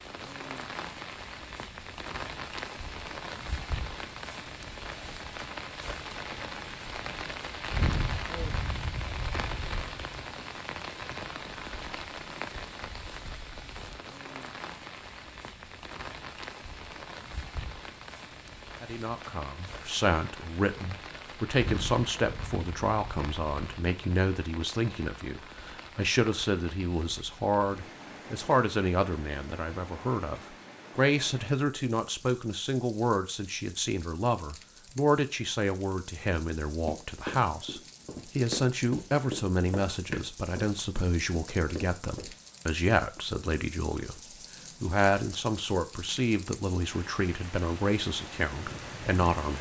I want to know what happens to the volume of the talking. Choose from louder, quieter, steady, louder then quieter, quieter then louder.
steady.